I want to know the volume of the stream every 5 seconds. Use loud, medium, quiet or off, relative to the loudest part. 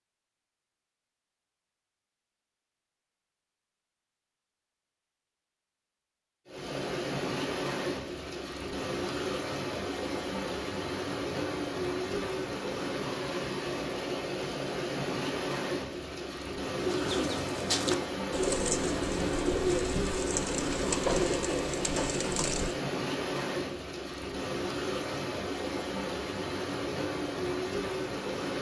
off, loud, loud, loud, loud, loud.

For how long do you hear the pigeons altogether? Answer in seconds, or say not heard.
6 s.